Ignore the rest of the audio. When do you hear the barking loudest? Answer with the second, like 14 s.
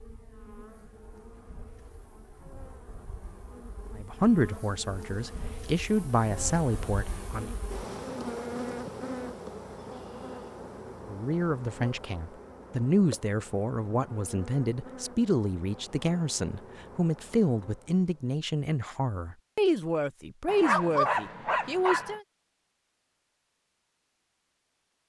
21 s.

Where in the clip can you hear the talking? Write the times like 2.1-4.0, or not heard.
4.0-7.5, 11.1-22.2.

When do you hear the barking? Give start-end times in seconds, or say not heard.
20.4-22.1.